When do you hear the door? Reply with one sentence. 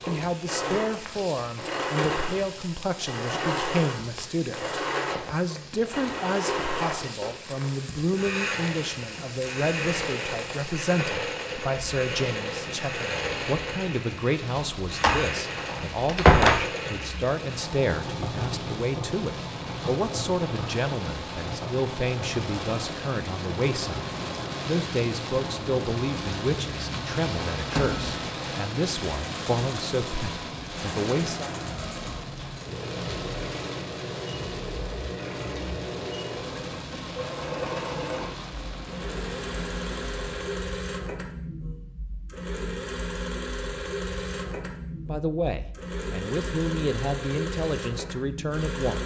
The door can be heard from 15.0 to 16.6 s and from 27.7 to 28.2 s.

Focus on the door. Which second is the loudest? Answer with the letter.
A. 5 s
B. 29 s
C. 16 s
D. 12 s
C.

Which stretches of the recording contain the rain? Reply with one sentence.
The rain can be heard from 0.0 to 40.6 s.